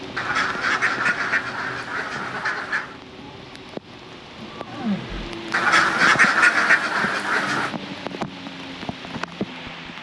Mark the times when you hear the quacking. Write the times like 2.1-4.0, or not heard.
0.1-3.0, 5.5-7.8.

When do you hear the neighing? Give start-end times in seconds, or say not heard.
4.5-5.3.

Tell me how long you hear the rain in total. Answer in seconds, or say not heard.
10 s.